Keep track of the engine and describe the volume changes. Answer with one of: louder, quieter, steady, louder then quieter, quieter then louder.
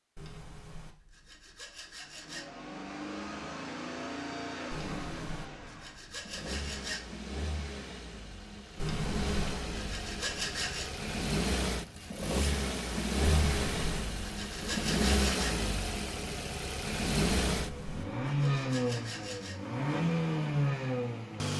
louder.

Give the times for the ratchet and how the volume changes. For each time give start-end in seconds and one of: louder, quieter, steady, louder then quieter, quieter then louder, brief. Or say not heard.
not heard.